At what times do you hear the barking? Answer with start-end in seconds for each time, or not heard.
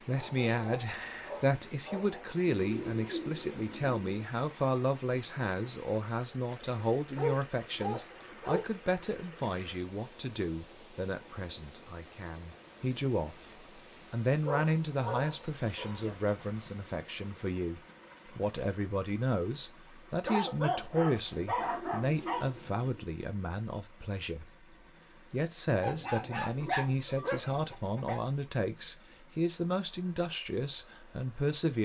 0.1-2.2, 7.2-8.7, 14.4-16.1, 20.2-22.7, 25.8-28.2.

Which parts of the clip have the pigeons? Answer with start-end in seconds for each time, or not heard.
2.5-4.2, 21.6-23.1.